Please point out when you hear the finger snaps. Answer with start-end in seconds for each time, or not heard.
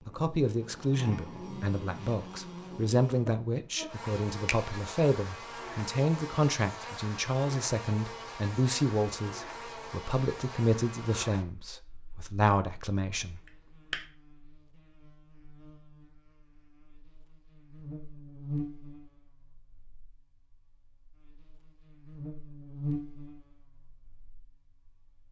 13.4-14.1.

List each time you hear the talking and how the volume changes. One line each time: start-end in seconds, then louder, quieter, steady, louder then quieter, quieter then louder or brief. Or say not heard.
0.1-13.4 steady.